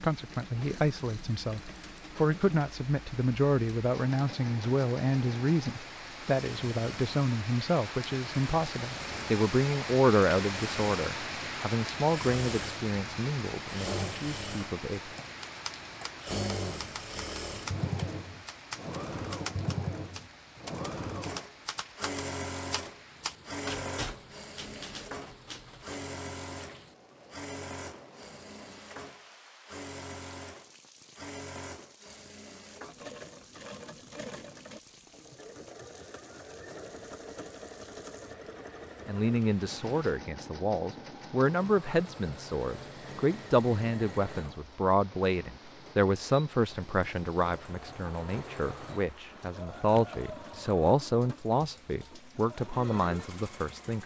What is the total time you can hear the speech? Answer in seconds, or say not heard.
30 s.